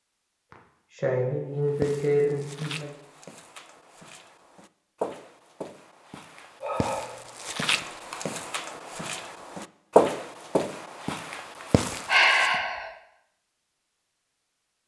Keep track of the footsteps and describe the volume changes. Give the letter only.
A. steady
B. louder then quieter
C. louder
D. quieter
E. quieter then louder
B.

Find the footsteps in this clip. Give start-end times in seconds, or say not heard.
1.6-12.6.